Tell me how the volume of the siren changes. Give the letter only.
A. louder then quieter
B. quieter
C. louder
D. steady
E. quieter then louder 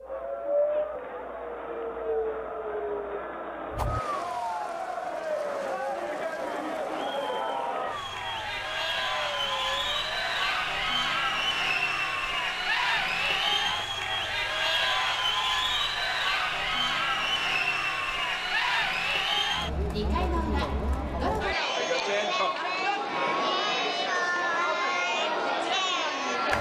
B.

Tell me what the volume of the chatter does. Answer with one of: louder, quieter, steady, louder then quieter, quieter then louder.
louder.